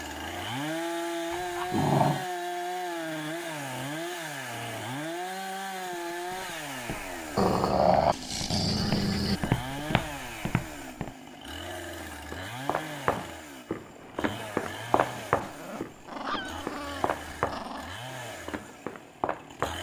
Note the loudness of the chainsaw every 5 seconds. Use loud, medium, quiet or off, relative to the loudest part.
loud, loud, medium, medium.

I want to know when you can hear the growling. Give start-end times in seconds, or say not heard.
1.3-2.2, 7.3-9.4, 15.4-18.0.